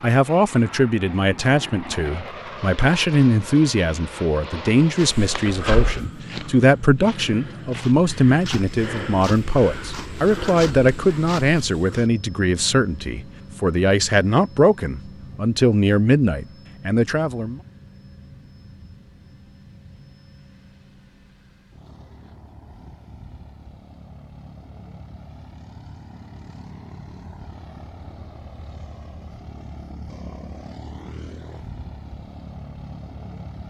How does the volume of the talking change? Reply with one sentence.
The volume of the talking stays about the same.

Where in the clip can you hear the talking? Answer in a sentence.
You can hear the talking from 0.0 to 17.6 s.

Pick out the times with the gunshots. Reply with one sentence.
The gunshots can't be heard in this clip.